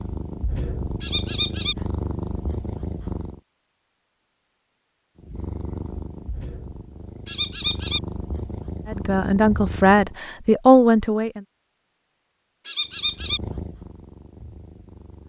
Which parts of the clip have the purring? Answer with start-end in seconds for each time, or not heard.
0.0-3.4, 5.2-10.2, 12.8-15.2.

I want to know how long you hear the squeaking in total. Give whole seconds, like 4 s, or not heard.
2 s.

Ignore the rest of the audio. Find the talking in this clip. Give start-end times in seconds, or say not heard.
8.8-11.4.